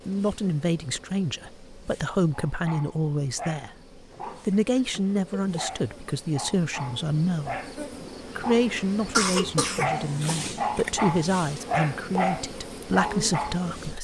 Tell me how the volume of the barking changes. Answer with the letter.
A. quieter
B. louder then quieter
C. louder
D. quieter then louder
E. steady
C.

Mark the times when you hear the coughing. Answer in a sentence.
The coughing can be heard from 9.1 to 10.5 s.